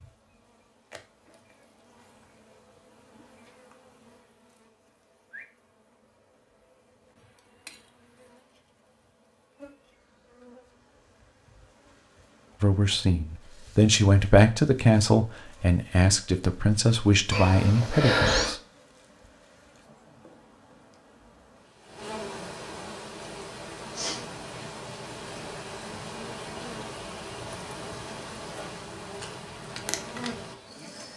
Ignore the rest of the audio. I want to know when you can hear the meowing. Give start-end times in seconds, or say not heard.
17.3-18.6.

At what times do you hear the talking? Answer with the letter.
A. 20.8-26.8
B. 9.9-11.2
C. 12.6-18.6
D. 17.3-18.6
C.